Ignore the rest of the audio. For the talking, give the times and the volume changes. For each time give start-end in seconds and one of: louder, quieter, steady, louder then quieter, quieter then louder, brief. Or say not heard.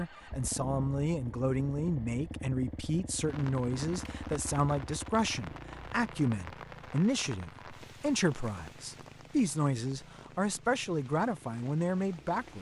0.0-12.5 steady.